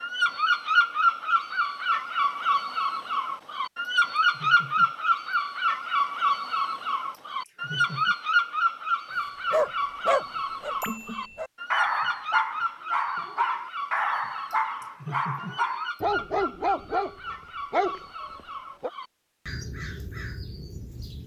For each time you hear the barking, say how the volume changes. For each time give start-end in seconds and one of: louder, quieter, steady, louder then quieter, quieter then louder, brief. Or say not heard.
9.5-18.9 steady.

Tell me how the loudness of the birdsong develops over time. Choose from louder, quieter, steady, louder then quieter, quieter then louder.
quieter.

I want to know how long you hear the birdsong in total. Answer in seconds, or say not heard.
21 s.